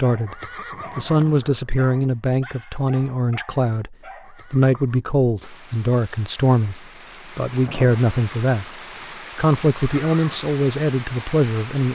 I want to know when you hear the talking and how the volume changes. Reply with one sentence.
The talking can be heard from 0.0 to 8.7 s, at a steady volume; and briefly from 9.3 to 11.9 s.